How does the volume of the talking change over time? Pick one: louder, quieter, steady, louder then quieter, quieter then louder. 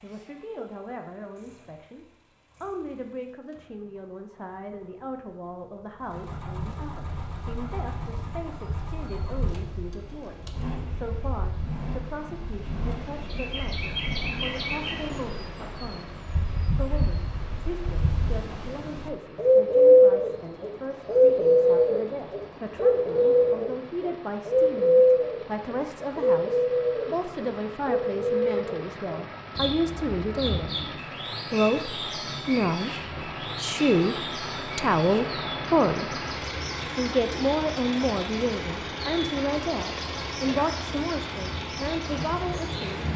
louder.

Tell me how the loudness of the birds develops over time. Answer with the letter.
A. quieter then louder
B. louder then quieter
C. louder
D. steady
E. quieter
B.